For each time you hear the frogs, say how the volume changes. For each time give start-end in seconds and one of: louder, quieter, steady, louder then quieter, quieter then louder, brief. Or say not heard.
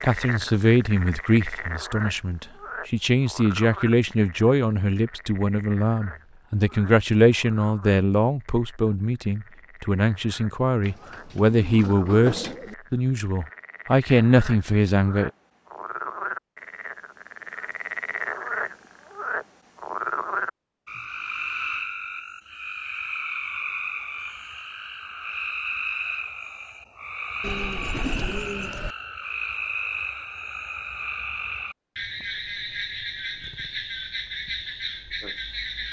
0.0-35.8 quieter then louder.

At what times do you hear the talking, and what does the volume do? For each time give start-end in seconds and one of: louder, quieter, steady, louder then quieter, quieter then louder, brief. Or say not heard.
0.0-15.3 steady.